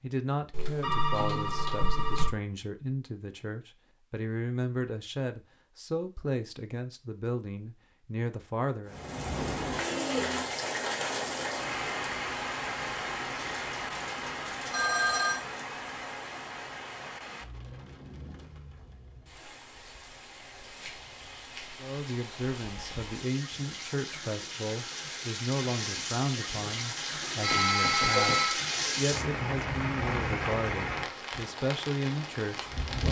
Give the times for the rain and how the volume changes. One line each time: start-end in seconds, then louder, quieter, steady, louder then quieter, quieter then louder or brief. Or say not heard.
8.8-33.0 quieter then louder.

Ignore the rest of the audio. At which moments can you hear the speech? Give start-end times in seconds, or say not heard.
0.0-9.0, 21.8-33.0.